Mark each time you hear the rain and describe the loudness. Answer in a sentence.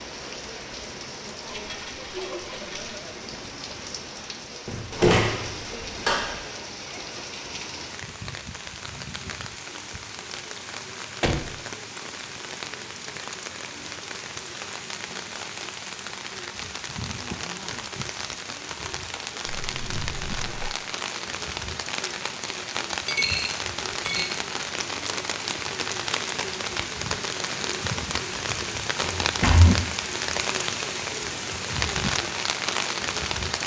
The rain can be heard from 0.0 to 33.6 s, getting louder.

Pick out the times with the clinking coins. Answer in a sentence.
The clinking coins can be heard from 1.4 to 2.9 s, from 19.4 to 20.7 s and from 23.1 to 24.4 s.